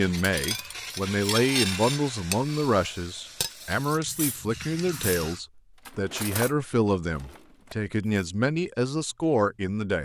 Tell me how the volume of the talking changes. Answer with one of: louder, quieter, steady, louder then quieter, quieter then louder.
steady.